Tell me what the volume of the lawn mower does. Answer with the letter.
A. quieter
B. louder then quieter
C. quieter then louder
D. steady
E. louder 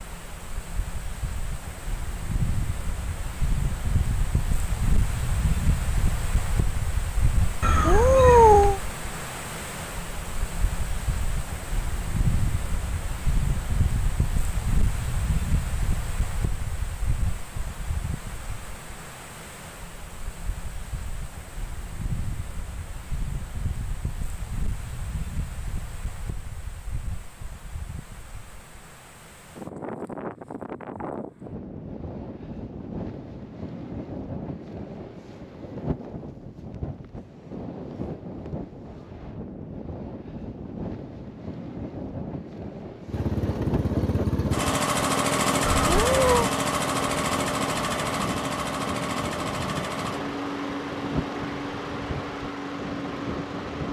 A.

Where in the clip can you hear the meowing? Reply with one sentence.
The meowing can be heard from 7.6 to 8.8 s and from 45.8 to 46.5 s.